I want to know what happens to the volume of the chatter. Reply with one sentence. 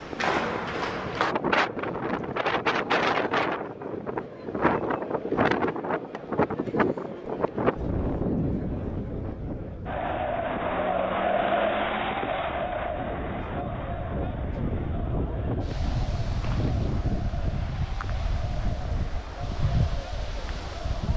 The volume of the chatter goes up, then down.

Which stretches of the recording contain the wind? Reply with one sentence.
You can hear the wind from 0.0 to 21.1 s.